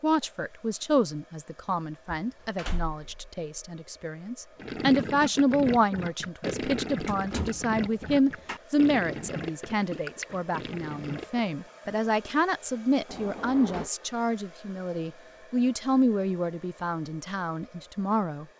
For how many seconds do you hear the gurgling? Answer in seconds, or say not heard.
7 s.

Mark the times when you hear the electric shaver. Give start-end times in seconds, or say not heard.
not heard.